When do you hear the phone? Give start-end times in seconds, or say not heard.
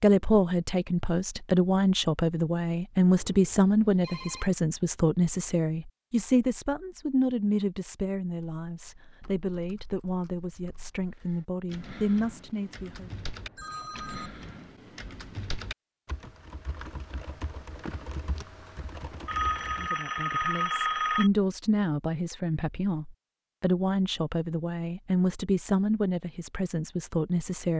3.1-4.5, 13.2-14.3, 19.2-21.3.